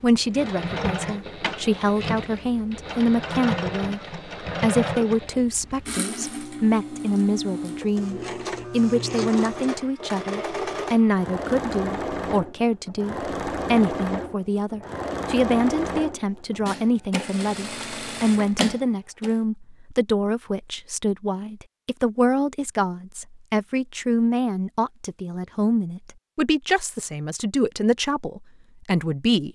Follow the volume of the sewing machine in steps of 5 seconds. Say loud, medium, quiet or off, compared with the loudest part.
loud, loud, loud, loud, off, off.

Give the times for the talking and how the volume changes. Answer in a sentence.
The talking can be heard from 0.0 to 29.5 s, at a steady volume.